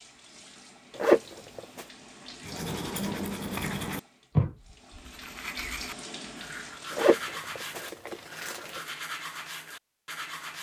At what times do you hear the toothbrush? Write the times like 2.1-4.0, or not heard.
2.4-10.5.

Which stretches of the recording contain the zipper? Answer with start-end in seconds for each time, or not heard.
0.9-1.9, 7.0-8.8.